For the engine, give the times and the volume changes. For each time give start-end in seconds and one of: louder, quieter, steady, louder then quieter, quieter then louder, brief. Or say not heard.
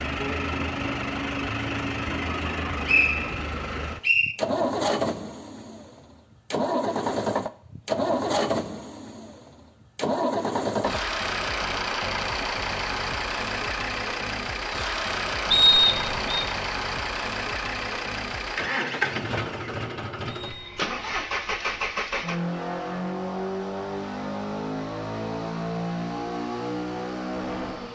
0.0-27.9 steady.